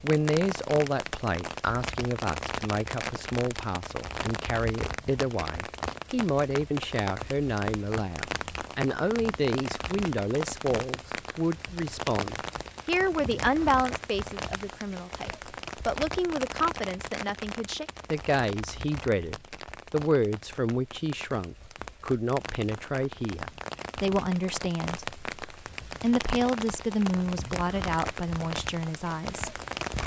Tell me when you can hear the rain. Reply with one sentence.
The rain can be heard from 0.0 to 30.0 s.